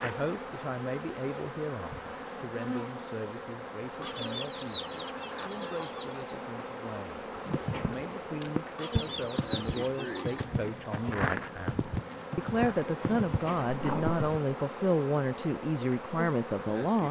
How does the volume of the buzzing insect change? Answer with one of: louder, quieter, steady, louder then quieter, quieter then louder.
steady.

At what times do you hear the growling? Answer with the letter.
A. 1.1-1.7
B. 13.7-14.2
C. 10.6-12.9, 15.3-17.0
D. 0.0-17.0
B.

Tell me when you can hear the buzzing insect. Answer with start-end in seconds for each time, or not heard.
0.0-17.0.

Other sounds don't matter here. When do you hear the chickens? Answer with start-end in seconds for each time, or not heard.
4.0-6.3, 8.8-10.4.